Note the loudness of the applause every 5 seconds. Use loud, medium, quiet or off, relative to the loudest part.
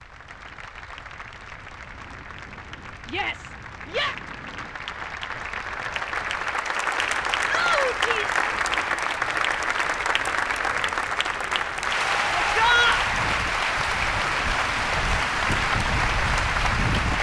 quiet, loud, loud, loud.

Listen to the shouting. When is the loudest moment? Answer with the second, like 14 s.
13 s.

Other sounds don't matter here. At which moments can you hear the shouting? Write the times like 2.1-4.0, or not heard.
3.0-4.2, 7.5-8.4, 12.3-13.1.